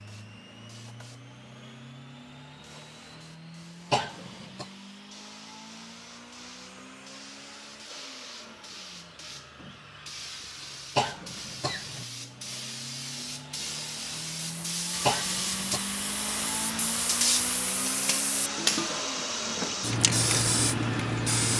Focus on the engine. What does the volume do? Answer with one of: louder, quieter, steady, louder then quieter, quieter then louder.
louder.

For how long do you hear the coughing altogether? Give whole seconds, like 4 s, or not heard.
3 s.